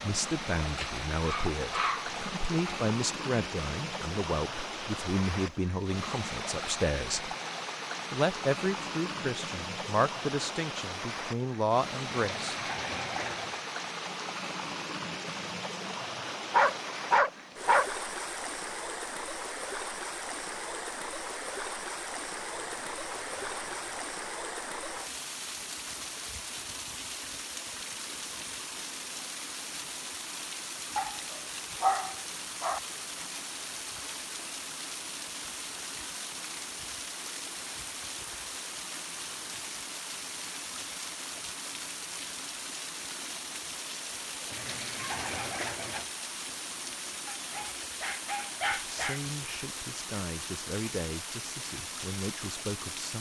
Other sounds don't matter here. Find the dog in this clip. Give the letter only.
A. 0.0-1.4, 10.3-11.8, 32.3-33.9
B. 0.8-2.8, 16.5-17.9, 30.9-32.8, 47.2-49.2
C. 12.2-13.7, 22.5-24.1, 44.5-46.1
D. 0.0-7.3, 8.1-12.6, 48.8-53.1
B.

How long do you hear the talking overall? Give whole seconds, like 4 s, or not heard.
16 s.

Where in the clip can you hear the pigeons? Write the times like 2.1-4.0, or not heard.
12.2-13.7, 22.5-24.1, 44.5-46.1.